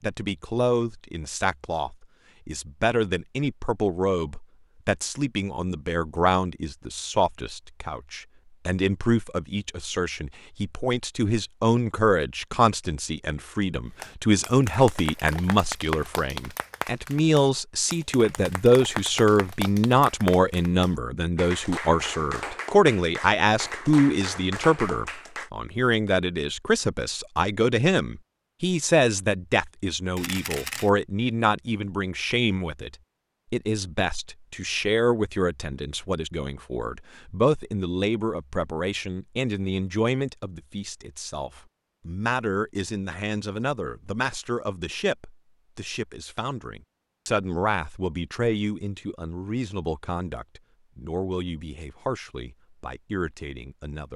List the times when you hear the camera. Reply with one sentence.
The camera can be heard from 30.1 to 30.9 s.